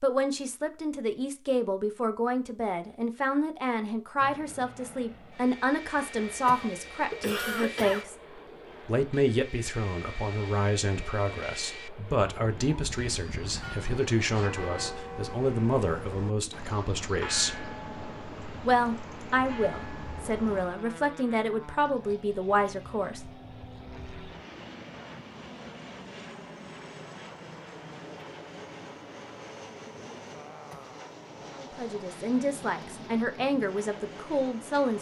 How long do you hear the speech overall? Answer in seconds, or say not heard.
25 s.